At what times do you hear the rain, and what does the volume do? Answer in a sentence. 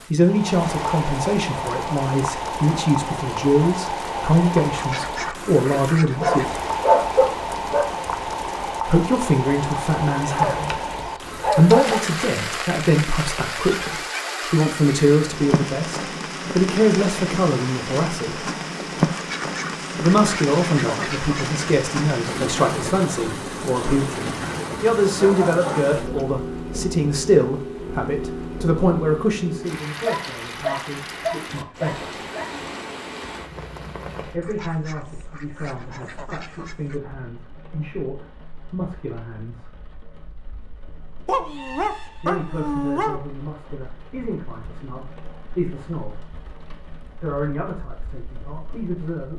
The rain can be heard from 0.0 to 49.3 s, getting quieter.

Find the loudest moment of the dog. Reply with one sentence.
The loudest moment of the dog is at 7 seconds.